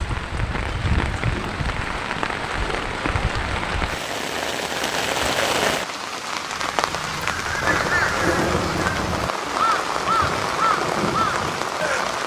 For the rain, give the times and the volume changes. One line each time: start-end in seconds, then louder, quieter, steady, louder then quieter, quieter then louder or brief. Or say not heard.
0.0-12.2 steady.